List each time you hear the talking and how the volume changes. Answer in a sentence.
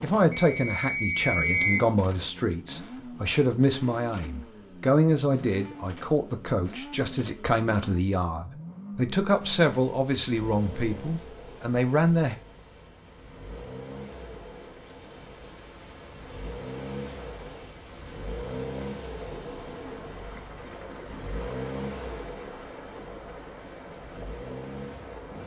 The talking can be heard from 0.0 to 12.3 s, at a steady volume.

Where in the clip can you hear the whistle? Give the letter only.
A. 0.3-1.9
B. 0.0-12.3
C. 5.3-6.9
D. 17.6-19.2
A.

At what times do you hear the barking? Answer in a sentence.
You can't hear the barking here.